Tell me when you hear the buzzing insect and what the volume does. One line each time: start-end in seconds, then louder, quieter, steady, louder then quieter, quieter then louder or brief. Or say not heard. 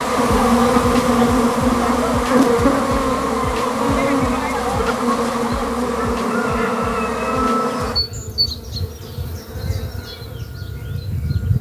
0.0-11.5 quieter.